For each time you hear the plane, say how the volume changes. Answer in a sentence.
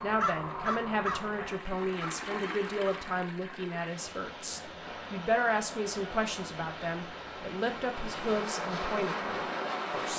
You can hear the plane from 4.8 to 10.1 s, getting louder.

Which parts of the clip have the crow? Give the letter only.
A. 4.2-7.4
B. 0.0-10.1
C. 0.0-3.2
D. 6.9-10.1
C.